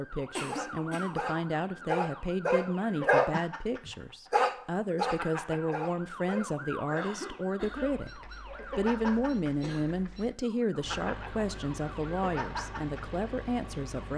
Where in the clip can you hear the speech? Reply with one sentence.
The speech can be heard from 0.0 to 14.1 s.